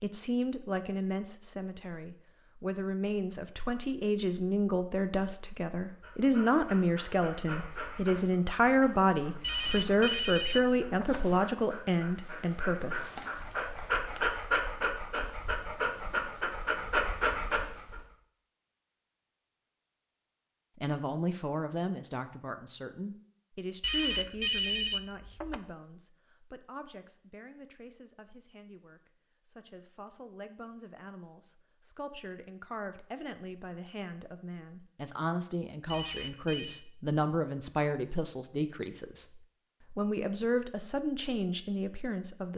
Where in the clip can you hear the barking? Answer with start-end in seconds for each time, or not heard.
6.0-18.1.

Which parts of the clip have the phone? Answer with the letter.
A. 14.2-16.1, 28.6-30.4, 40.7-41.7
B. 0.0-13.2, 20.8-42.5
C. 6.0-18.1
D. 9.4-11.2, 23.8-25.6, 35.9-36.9
D.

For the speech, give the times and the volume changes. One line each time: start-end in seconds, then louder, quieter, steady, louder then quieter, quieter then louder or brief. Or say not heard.
0.0-13.2 louder
20.8-42.5 quieter then louder.